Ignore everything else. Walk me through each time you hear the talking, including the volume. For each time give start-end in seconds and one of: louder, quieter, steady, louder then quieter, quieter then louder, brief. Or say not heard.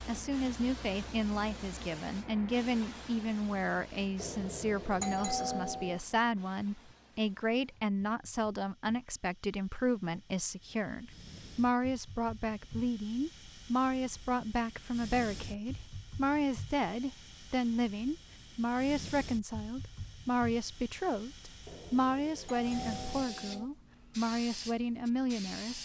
0.1-25.8 steady.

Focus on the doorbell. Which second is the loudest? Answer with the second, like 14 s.
5 s.